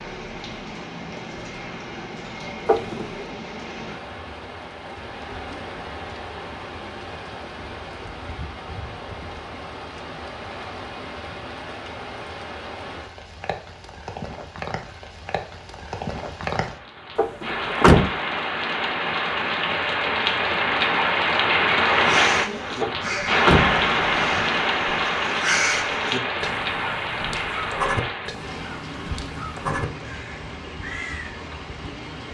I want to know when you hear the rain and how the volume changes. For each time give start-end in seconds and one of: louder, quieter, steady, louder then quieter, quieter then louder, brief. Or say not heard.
0.0-32.2 louder then quieter.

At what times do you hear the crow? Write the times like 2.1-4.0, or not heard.
21.9-31.4.